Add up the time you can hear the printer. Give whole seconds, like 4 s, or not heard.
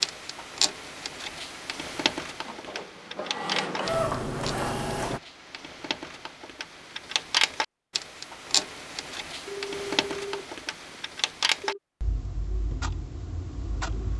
3 s.